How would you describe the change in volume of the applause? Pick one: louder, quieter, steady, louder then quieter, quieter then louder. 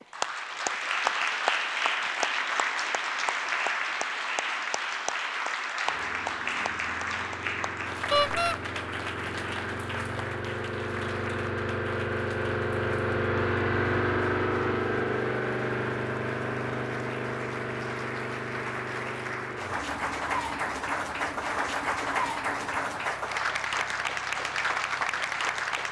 quieter then louder.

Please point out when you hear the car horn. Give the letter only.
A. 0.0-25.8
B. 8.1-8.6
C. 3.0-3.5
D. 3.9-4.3
B.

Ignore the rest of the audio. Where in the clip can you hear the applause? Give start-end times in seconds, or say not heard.
0.0-25.8.